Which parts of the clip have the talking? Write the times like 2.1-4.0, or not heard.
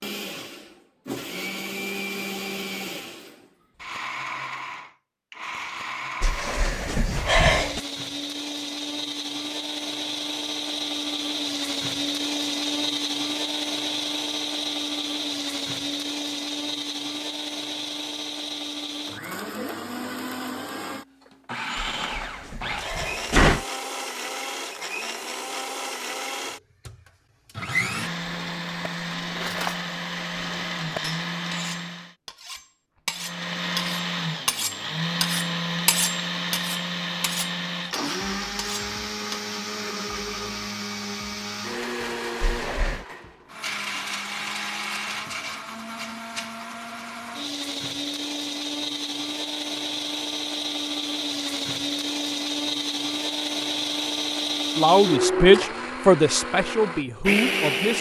54.8-57.9.